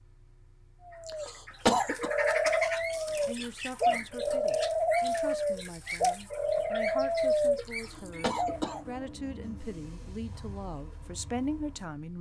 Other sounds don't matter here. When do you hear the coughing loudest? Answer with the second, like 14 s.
2 s.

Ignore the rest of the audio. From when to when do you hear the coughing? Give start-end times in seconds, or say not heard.
1.1-2.1, 7.7-8.8.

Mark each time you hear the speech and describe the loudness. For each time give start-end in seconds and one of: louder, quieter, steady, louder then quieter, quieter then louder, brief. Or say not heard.
3.1-12.1 louder.